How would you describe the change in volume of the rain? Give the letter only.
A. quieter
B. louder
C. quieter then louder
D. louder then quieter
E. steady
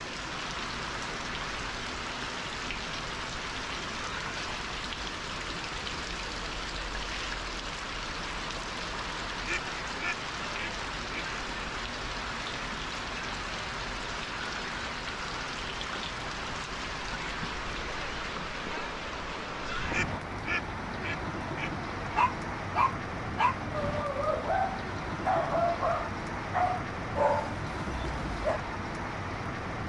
E.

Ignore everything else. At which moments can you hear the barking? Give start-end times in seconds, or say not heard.
22.1-28.6.